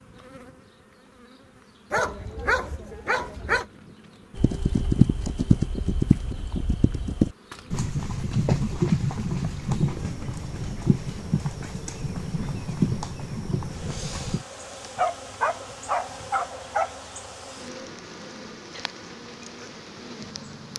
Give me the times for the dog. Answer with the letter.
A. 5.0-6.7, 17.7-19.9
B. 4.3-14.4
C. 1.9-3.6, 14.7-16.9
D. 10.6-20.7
C.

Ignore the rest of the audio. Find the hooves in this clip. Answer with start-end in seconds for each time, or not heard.
4.3-14.4.